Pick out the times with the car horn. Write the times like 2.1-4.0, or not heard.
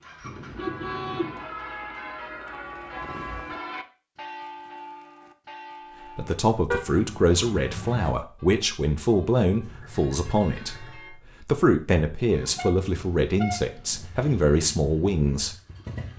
0.2-1.5, 6.7-8.2, 12.3-14.1.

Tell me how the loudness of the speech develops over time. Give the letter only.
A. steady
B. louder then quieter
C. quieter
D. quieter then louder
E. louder
A.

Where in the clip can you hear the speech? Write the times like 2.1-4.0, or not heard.
6.2-15.6.